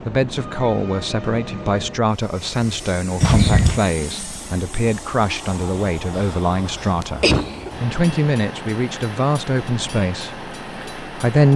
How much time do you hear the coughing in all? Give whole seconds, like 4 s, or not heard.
2 s.